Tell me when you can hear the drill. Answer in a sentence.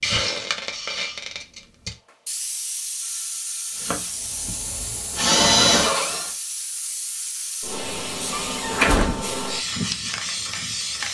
You can hear the drill from 3.8 to 6.3 s.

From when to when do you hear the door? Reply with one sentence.
The door can be heard from 8.3 to 9.2 s.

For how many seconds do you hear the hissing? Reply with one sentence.
You can hear the hissing for 11 seconds altogether.